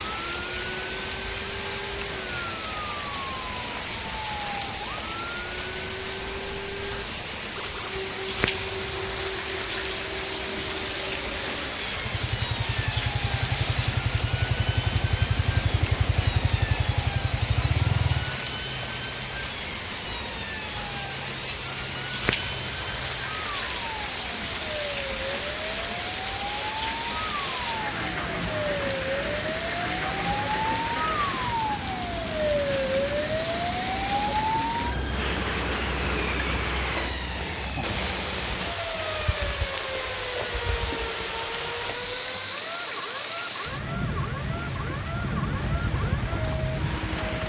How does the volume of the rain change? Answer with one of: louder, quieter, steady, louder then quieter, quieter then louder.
steady.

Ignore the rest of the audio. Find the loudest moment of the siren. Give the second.
33 s.